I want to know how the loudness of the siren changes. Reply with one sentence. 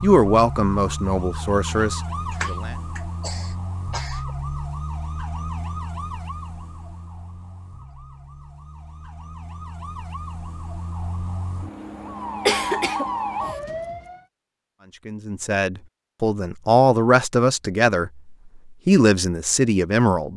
The volume of the siren goes down, then up.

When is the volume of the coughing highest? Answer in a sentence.
The volume of the coughing peaks at 13 seconds.